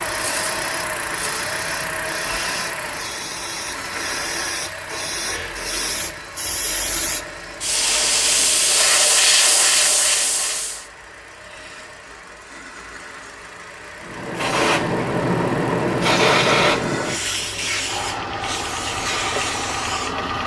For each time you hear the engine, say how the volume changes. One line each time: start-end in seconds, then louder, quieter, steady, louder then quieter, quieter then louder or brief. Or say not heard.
0.0-20.4 quieter then louder.